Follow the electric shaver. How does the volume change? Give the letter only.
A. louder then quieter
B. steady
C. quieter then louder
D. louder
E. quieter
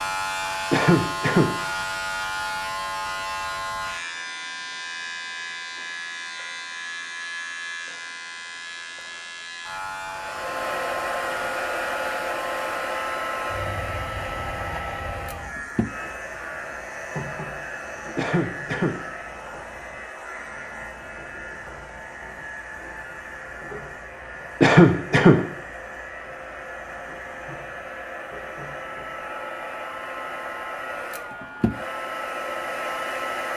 E.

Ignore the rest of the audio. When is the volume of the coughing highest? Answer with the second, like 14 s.
25 s.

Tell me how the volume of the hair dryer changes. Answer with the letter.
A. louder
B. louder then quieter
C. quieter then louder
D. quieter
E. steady
C.